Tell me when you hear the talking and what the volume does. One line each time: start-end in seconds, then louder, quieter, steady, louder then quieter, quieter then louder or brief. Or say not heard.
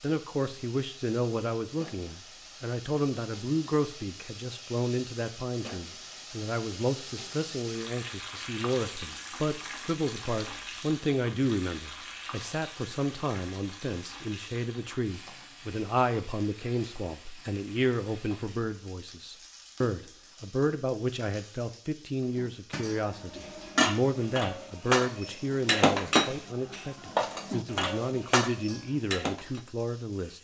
0.0-30.3 steady.